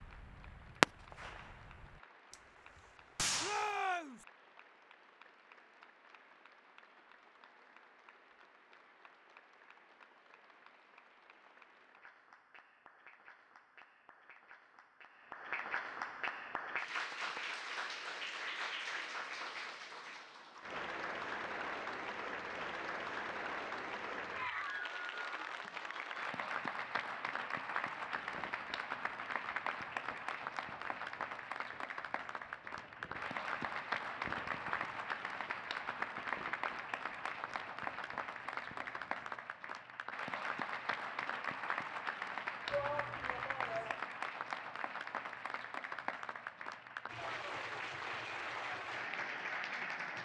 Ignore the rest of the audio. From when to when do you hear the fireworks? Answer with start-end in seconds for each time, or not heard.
0.0-2.4, 3.1-3.8, 27.9-39.5.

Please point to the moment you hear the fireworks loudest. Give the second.
1 s.